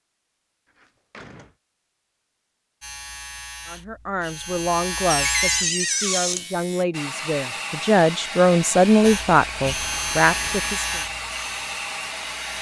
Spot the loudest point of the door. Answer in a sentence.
The loudest moment of the door is at 6 seconds.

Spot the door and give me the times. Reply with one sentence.
You can hear the door from 0.8 to 1.6 s, from 5.0 to 6.5 s and from 9.6 to 10.8 s.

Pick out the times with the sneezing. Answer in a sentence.
You can't hear the sneezing here.